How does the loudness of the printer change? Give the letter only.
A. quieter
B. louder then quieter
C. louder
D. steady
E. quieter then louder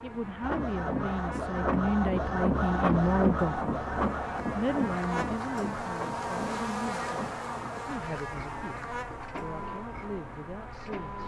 A.